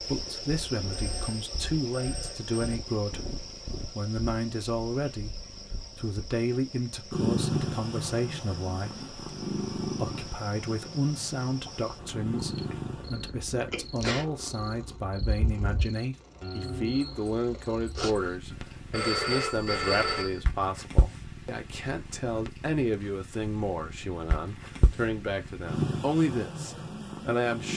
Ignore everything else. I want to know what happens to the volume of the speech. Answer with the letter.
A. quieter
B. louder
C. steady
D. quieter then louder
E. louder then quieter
C.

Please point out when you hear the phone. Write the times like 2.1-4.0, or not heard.
0.9-2.8, 18.5-20.4.